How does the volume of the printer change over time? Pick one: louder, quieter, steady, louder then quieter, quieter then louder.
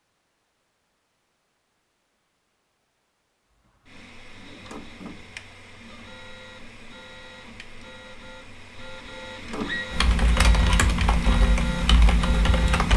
louder.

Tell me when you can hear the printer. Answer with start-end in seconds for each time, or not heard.
3.6-12.9.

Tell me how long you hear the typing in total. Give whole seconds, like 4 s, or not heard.
3 s.